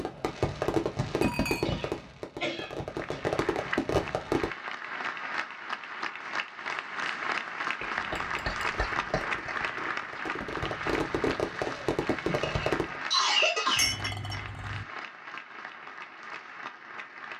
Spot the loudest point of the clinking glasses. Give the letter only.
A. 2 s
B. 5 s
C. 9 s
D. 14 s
D.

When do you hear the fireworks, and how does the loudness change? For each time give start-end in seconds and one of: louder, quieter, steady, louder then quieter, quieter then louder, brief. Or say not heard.
0.0-4.5 quieter then louder
8.2-13.0 louder.